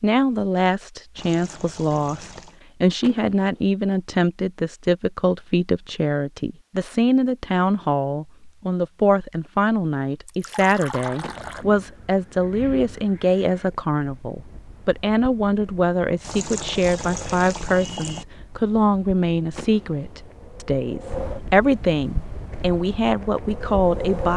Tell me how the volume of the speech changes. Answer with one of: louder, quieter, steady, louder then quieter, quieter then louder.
steady.